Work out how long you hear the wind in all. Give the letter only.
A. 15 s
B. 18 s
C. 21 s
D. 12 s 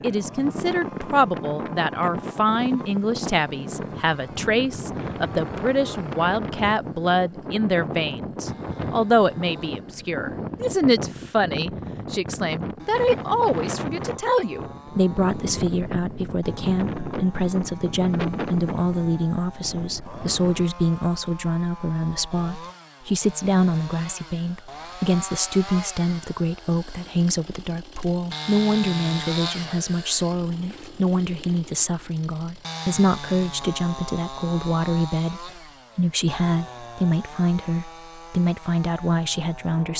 C.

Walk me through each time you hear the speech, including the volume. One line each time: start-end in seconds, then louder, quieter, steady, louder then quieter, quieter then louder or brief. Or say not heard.
0.0-39.9 steady.